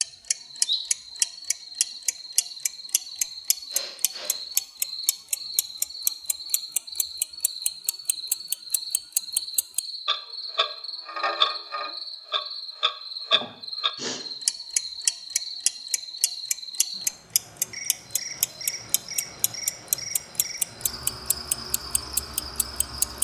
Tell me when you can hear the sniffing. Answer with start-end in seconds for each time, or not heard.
3.7-4.3, 13.3-14.2.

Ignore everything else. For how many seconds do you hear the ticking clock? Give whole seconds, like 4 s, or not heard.
23 s.